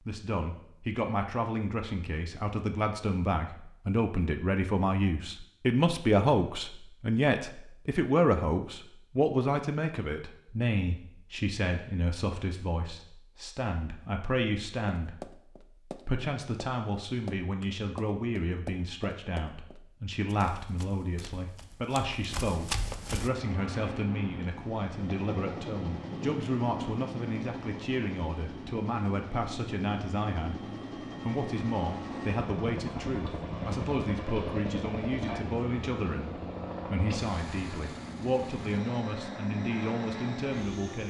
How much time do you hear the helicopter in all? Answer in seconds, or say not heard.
18 s.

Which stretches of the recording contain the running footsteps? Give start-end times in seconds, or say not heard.
15.0-23.3.